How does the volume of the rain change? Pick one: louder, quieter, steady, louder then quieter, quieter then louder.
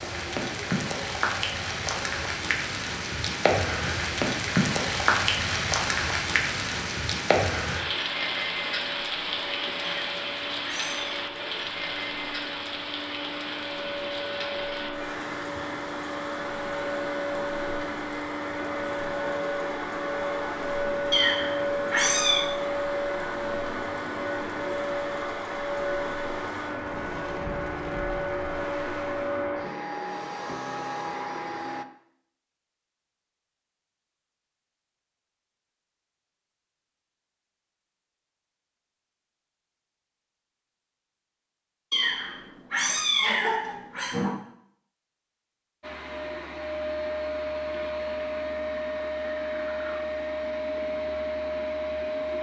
quieter.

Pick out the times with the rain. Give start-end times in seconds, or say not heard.
0.0-29.6.